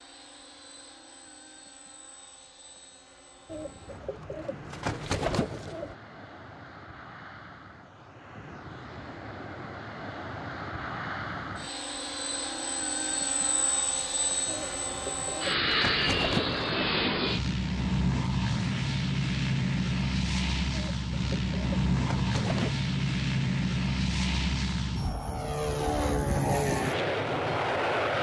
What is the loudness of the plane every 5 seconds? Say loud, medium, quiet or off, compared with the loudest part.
quiet, quiet, medium, loud, loud, loud.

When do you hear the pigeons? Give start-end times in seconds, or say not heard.
3.5-6.0, 14.4-16.9, 20.7-22.8.